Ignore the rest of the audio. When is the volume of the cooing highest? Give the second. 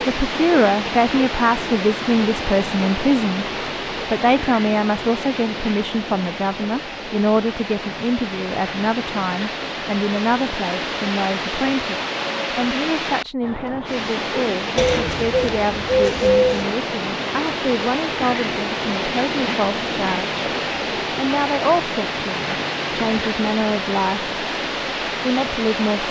16 s.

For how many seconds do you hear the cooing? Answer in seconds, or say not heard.
2 s.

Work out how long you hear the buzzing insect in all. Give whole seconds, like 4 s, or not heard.
not heard.